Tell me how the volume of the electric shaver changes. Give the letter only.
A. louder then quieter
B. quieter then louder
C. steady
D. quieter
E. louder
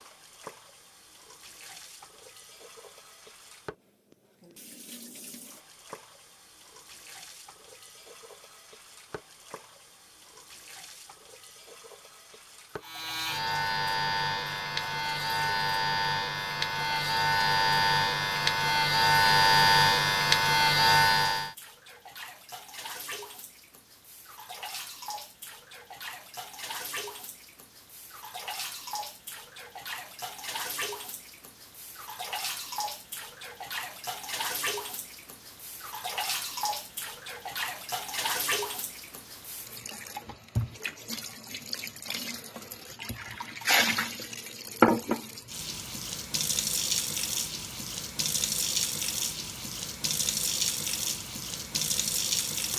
E.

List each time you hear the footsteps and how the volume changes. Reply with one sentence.
The footsteps can't be heard in this clip.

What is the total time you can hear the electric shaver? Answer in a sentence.
You can hear the electric shaver for 9 seconds altogether.